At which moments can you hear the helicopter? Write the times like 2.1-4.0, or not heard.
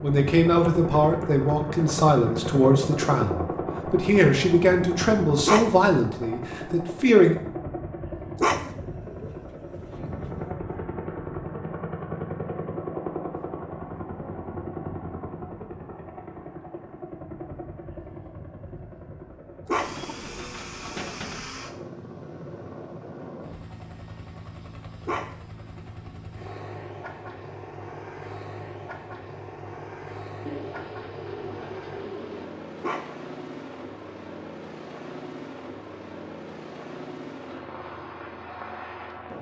0.0-39.3.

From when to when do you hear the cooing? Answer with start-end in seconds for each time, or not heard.
8.6-10.6, 19.8-21.6, 30.4-32.5.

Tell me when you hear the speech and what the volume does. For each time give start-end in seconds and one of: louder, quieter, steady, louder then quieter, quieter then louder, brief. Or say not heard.
0.0-7.3 steady.